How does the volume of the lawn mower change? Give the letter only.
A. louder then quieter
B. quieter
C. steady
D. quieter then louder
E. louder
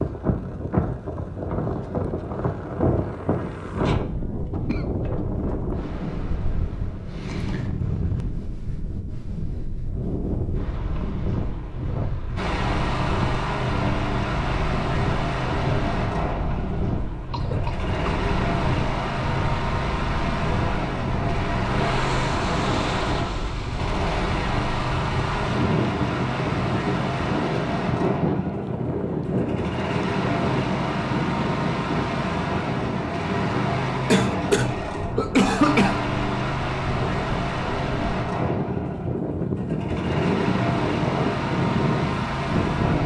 C.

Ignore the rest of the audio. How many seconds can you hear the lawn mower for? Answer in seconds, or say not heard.
31 s.